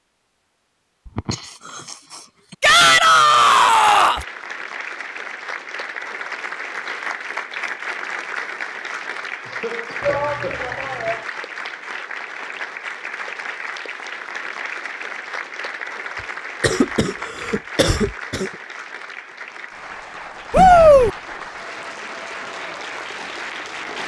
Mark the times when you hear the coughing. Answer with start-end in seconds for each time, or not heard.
1.1-2.5, 9.4-10.8, 16.2-18.6.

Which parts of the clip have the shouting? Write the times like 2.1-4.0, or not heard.
2.6-4.2, 10.0-11.2, 20.5-21.1.